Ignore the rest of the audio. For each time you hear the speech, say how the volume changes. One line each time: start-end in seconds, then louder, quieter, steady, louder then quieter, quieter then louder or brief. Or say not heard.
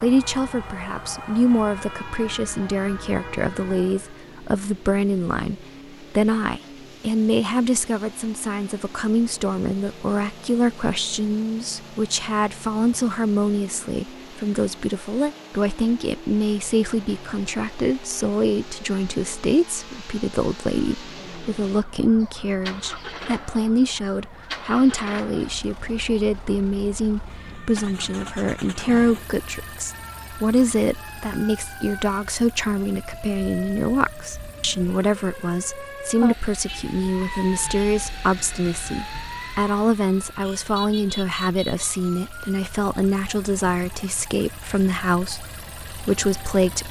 0.0-46.8 steady.